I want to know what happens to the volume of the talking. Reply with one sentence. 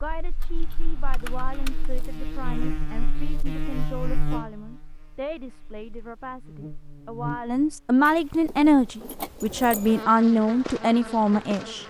The volume of the talking goes up.